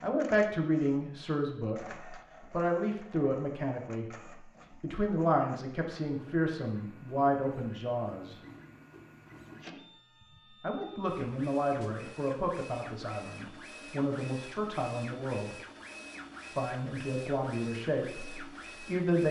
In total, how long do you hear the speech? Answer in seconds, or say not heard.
15 s.